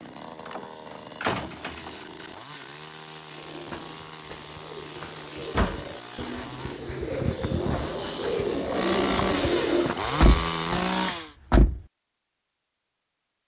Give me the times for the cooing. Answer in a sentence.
The cooing can be heard from 3.4 to 9.9 s.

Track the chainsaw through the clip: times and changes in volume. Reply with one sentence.
The chainsaw can be heard from 0.0 to 11.3 s, getting louder.